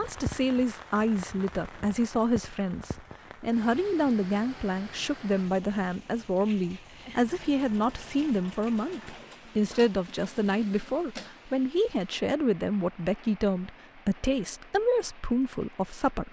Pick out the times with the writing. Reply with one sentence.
You can't hear the writing here.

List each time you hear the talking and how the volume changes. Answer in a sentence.
The talking can be heard from 0.0 to 16.2 s, at a steady volume.